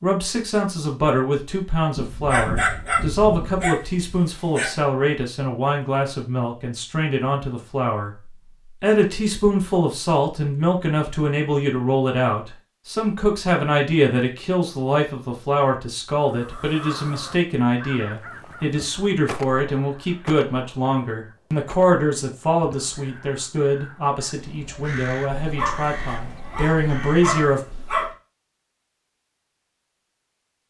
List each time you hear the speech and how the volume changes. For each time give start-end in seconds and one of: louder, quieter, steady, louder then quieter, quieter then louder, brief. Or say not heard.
0.0-27.6 steady.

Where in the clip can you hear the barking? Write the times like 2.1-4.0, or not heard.
1.9-4.7, 25.2-28.1.